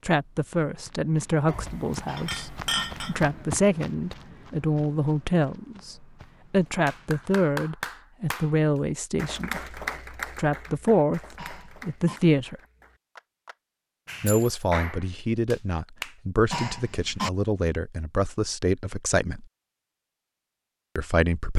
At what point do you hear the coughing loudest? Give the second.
17 s.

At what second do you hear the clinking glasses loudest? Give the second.
3 s.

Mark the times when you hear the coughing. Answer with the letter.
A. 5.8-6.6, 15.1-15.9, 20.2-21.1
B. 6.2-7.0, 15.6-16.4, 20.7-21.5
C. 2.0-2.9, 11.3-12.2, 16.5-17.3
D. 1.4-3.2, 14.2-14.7
C.